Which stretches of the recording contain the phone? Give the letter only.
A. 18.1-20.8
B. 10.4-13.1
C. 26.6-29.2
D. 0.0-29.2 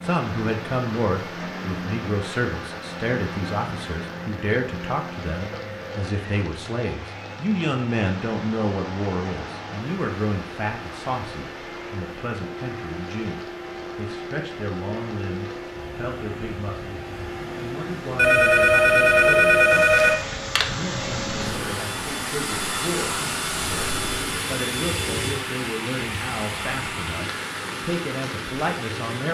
A.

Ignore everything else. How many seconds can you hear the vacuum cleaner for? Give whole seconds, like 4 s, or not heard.
29 s.